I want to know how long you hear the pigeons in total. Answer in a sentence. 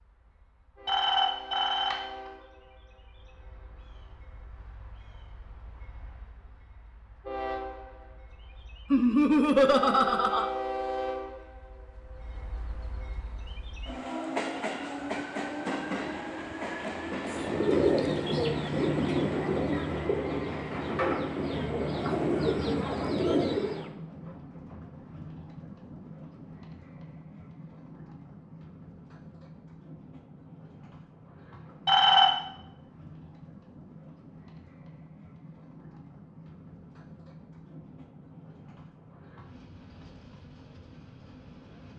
The pigeons can be heard for 7 seconds in total.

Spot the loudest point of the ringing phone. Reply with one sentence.
The volume of the ringing phone peaks at 32 seconds.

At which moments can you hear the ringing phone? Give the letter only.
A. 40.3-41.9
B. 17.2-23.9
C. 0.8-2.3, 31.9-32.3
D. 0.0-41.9
C.